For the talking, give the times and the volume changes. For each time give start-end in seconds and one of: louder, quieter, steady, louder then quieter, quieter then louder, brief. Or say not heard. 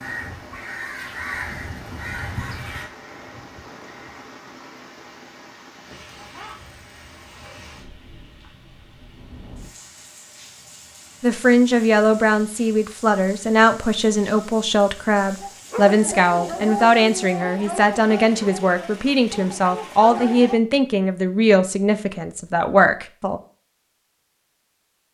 11.2-23.4 steady.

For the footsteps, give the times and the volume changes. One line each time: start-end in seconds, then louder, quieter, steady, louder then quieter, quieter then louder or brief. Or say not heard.
not heard.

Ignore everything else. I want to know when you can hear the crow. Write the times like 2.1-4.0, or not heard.
0.0-4.2.